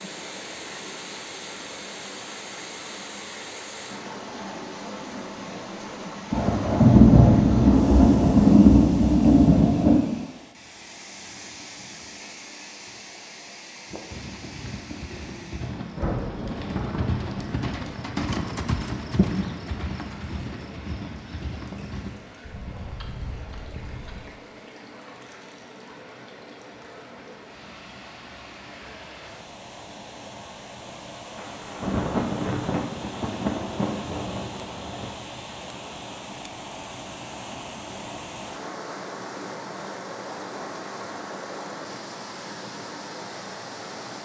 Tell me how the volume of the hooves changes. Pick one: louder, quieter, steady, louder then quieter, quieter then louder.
louder then quieter.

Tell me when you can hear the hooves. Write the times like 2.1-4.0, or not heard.
13.8-24.3.